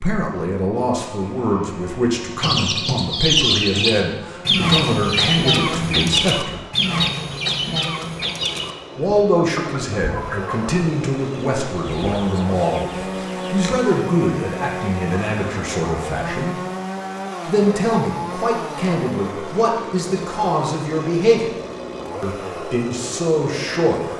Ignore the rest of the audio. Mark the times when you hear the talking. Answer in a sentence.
You can hear the talking from 0.0 to 6.6 s, from 8.9 to 16.6 s, from 17.4 to 21.5 s and from 22.2 to 24.1 s.